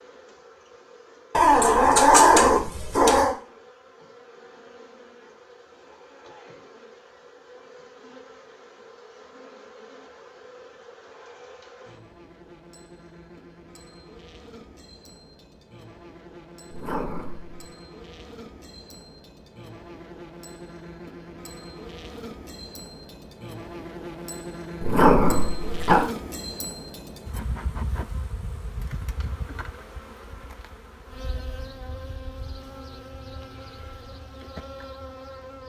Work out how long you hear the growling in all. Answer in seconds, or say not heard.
4 s.